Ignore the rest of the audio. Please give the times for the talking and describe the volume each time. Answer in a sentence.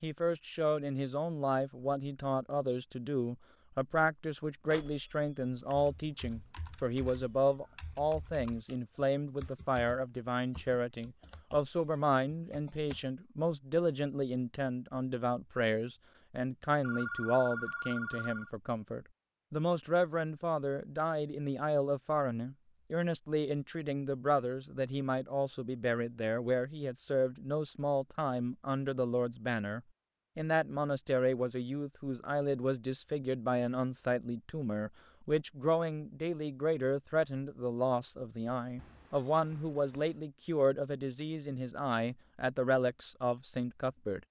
You can hear the talking from 0.0 to 44.2 s, at a steady volume.